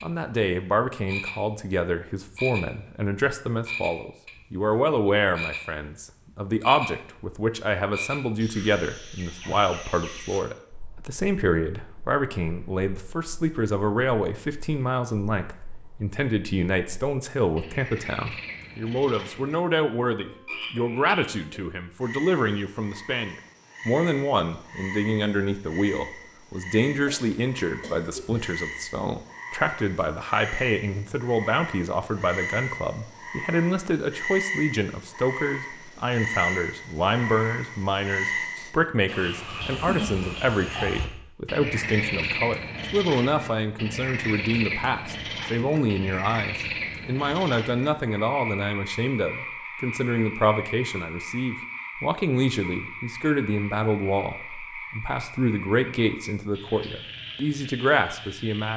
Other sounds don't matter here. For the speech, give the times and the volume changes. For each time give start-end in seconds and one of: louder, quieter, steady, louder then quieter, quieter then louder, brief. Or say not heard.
0.0-58.7 steady.